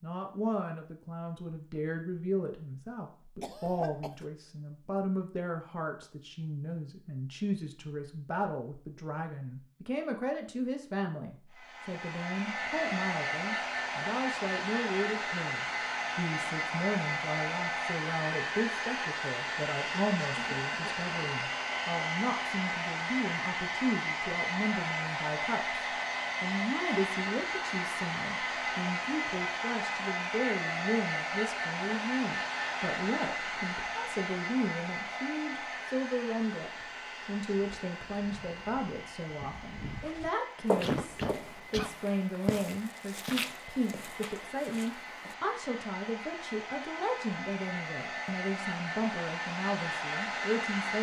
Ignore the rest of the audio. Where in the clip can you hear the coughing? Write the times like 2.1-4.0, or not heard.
3.4-4.2, 20.4-21.1, 40.8-41.9.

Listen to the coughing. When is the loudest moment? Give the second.
41 s.